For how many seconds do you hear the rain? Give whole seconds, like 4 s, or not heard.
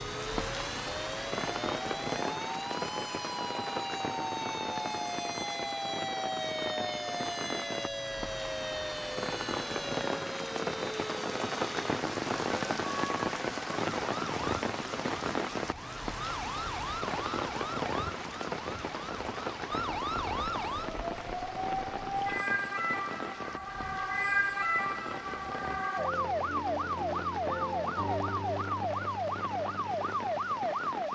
31 s.